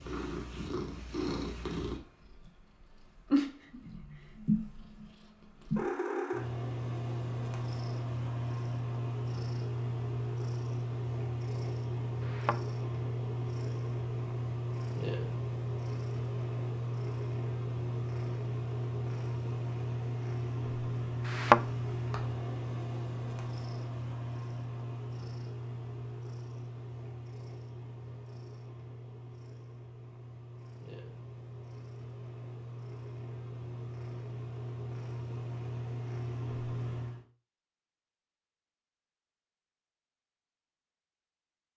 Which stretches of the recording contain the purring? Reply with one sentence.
The purring can be heard from 0.0 to 37.2 s.